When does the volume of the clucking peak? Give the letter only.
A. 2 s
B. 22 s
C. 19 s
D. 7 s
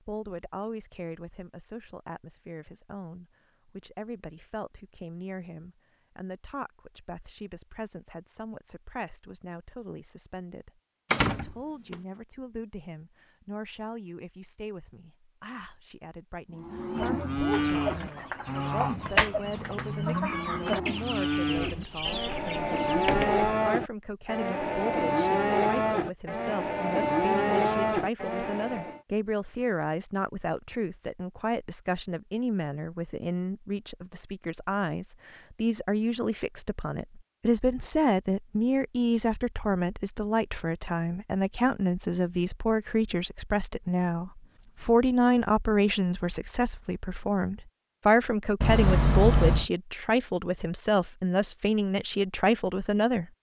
C.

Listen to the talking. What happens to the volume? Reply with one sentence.
The loudness of the talking goes up.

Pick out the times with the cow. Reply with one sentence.
You can hear the cow from 16.5 to 29.0 s.